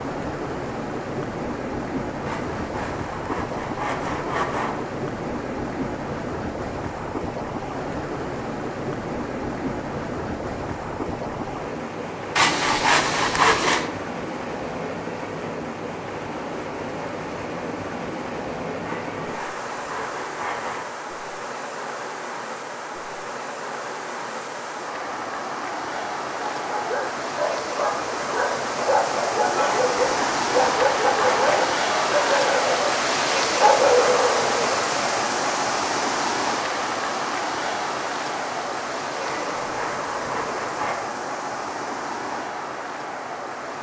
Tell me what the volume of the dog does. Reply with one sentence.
The volume of the dog goes up.